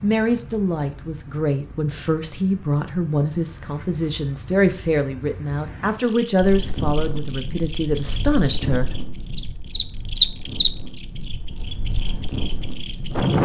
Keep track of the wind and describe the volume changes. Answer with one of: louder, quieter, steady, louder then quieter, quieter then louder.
quieter then louder.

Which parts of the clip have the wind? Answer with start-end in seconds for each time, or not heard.
6.4-13.4.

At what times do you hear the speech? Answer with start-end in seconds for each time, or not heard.
0.0-8.9.